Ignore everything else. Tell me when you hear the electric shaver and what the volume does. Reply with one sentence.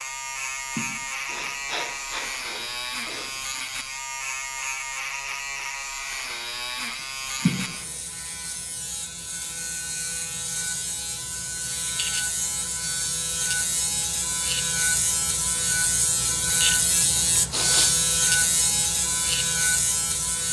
You can hear the electric shaver from 0.0 to 20.4 s, getting louder.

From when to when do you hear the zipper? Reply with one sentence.
You can't hear the zipper here.